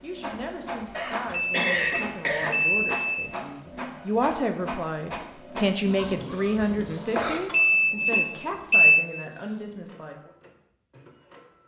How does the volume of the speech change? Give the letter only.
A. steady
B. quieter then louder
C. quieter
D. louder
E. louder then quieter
E.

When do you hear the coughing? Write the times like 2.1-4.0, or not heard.
0.9-2.5, 5.8-7.4.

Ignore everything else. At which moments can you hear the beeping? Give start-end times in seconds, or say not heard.
1.2-3.3, 7.5-9.1.